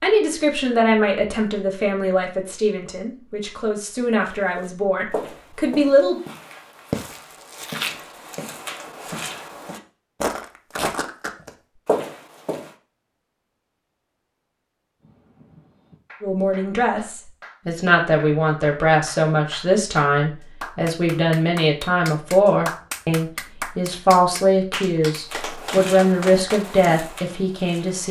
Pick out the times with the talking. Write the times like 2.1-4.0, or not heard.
0.0-6.2, 16.2-28.0.